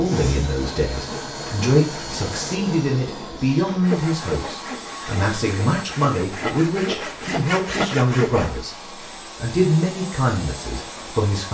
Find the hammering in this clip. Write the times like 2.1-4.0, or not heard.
not heard.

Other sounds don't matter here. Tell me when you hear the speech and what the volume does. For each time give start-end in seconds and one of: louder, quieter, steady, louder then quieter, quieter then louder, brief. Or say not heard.
0.0-11.4 steady.